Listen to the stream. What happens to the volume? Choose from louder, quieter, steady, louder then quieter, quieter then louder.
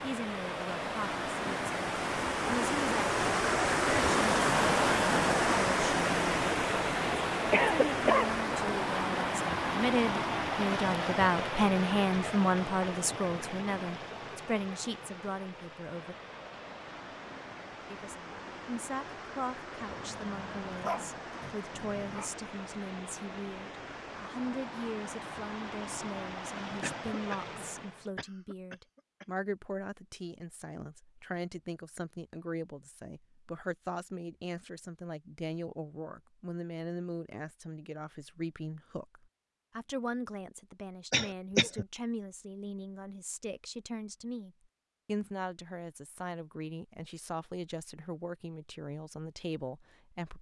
quieter.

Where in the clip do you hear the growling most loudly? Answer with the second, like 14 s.
21 s.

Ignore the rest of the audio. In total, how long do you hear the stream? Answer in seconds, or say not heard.
28 s.